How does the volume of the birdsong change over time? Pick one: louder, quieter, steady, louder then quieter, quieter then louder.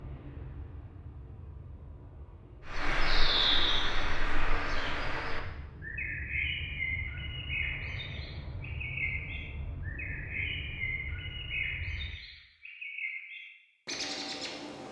quieter.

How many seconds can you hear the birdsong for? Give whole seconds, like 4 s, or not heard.
12 s.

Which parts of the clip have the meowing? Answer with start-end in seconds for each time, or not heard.
not heard.